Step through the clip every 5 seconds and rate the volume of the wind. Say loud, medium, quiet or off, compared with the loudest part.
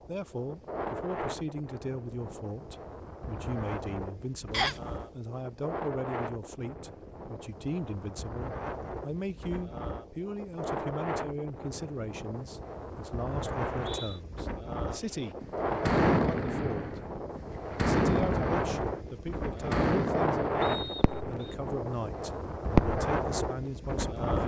medium, medium, medium, loud, loud.